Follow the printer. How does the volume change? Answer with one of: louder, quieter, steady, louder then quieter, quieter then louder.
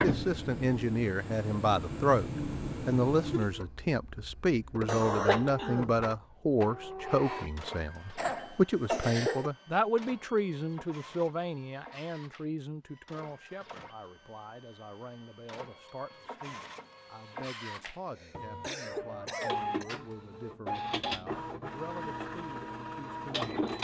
quieter then louder.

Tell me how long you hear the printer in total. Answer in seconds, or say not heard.
24 s.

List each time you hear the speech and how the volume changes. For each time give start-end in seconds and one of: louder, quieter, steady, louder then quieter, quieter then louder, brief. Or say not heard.
0.0-23.5 quieter.